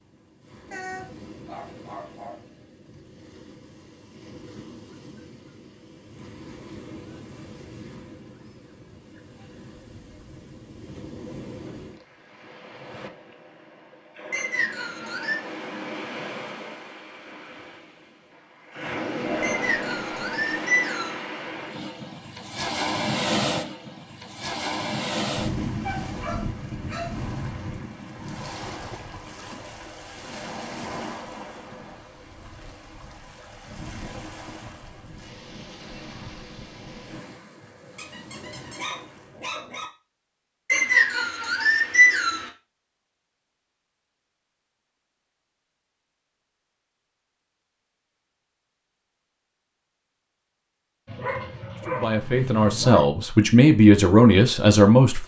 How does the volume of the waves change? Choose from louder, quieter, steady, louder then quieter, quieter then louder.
louder then quieter.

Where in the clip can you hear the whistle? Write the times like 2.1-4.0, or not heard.
14.3-15.4, 19.4-21.2, 40.6-42.5.